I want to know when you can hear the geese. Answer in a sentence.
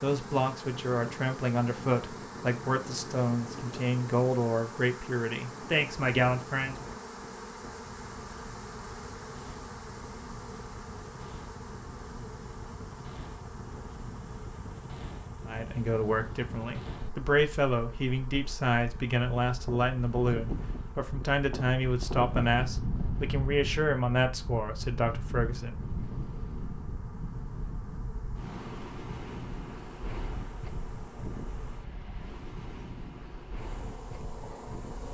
The geese can't be heard in this clip.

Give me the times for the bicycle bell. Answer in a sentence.
The bicycle bell can't be heard in this clip.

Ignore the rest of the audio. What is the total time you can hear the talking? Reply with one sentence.
You can hear the talking for 17 seconds altogether.